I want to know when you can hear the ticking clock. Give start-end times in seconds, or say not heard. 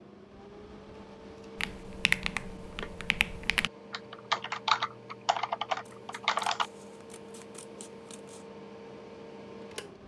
not heard.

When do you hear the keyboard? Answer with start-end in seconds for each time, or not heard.
1.6-6.7.